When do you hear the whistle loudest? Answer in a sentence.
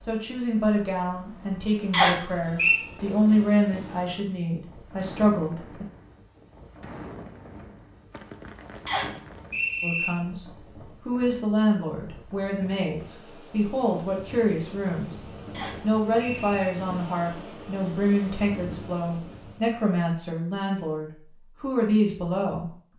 The volume of the whistle peaks at 2 seconds.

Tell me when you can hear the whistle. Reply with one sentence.
You can hear the whistle from 1.9 to 2.8 s, from 8.8 to 10.1 s and from 15.5 to 16.7 s.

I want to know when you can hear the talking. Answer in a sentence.
The talking can be heard from 0.1 to 5.8 s, from 9.8 to 15.2 s and from 15.8 to 22.8 s.